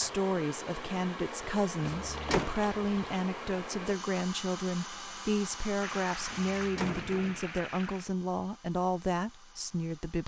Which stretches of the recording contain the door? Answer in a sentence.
The door can be heard from 1.8 to 2.5 s and from 6.3 to 7.4 s.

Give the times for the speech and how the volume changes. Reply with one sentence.
You can hear the speech from 0.0 to 10.2 s, at a steady volume.